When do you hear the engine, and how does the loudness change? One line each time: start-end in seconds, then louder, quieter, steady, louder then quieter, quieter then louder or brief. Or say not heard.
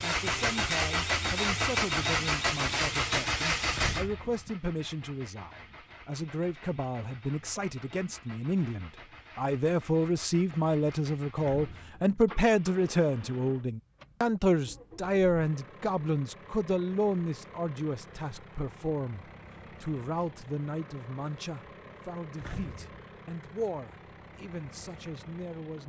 0.0-25.8 quieter.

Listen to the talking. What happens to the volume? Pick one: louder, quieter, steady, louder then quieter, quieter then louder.
louder then quieter.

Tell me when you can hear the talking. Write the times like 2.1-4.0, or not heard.
0.0-25.8.